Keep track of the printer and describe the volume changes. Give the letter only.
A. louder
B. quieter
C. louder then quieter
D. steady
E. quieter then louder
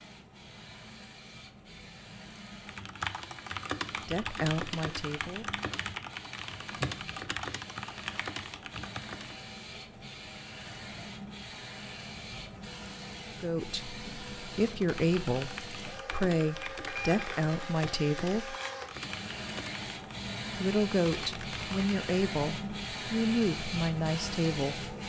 A.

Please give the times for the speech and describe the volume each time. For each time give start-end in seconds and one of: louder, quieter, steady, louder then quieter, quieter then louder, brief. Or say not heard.
4.0-5.6 brief
13.3-18.6 louder
20.6-24.9 steady.